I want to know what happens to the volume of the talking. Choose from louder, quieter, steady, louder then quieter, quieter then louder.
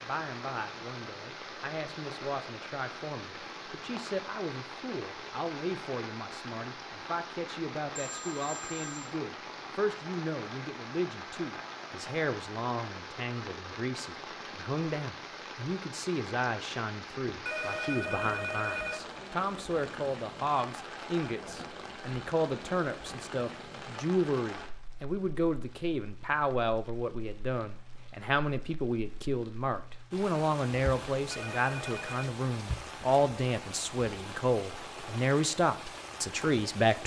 louder.